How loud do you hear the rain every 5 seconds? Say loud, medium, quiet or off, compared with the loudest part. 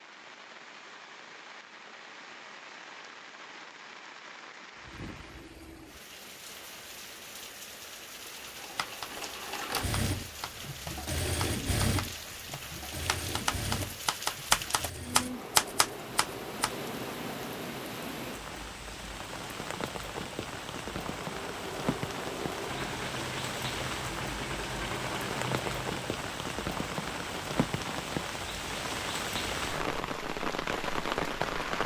quiet, quiet, medium, medium, medium, loud, loud.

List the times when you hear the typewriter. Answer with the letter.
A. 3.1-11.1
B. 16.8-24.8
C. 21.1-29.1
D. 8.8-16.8
D.